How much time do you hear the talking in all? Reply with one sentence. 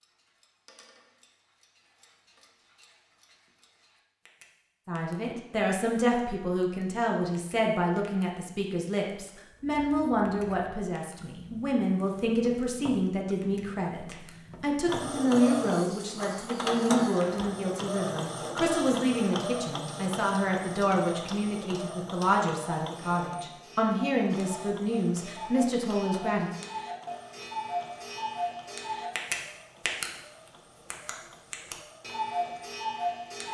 The talking can be heard for 22 seconds in total.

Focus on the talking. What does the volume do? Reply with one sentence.
The volume of the talking stays about the same.